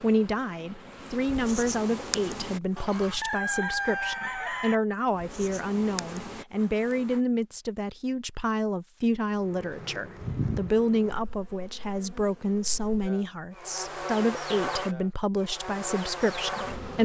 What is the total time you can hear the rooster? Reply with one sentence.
The rooster can be heard for 2 seconds in total.